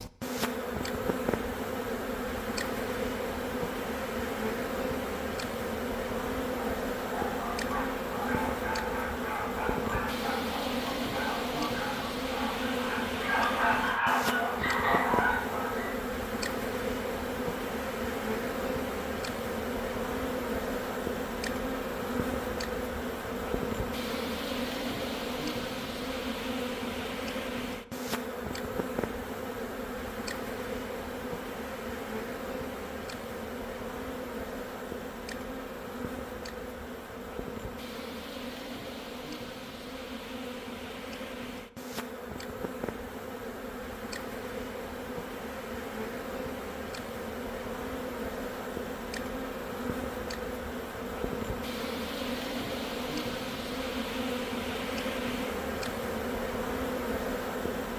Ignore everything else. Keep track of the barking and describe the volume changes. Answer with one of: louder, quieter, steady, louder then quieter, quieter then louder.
louder.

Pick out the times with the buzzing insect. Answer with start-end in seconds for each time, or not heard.
0.0-57.9.